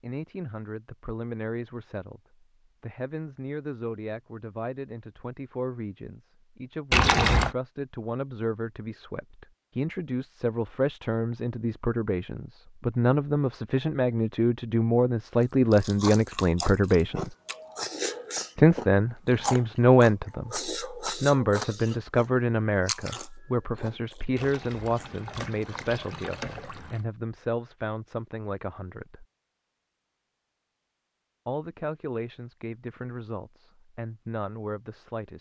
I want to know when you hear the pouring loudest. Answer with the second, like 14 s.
7 s.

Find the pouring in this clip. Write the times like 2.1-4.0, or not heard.
6.9-7.5, 24.4-27.1.